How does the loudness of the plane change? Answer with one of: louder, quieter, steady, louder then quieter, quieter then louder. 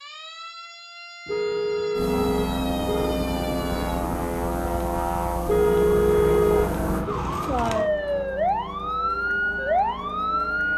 quieter.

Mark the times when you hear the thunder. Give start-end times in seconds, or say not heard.
2.8-4.2.